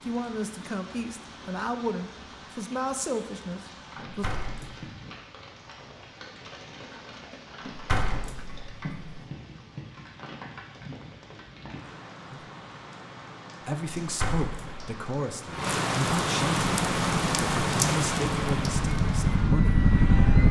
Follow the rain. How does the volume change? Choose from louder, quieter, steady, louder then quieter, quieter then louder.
louder.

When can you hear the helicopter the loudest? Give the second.
20 s.